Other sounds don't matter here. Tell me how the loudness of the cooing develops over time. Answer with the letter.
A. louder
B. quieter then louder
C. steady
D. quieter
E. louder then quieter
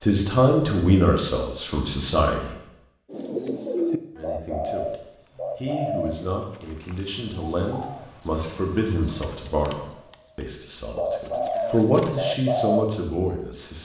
B.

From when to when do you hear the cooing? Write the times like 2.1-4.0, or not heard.
3.1-12.9.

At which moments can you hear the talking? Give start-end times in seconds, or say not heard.
0.0-2.5, 4.2-13.8.